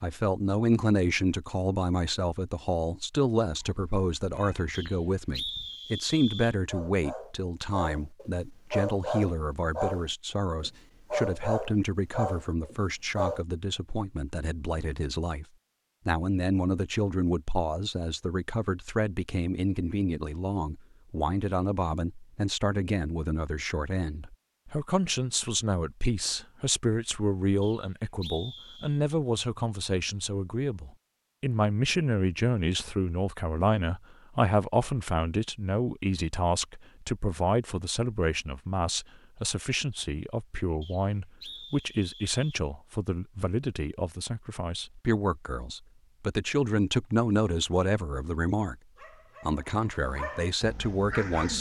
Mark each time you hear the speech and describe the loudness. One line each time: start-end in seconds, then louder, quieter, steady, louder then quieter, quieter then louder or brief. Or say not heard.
0.0-15.4 quieter
16.1-48.8 steady
49.4-51.5 brief.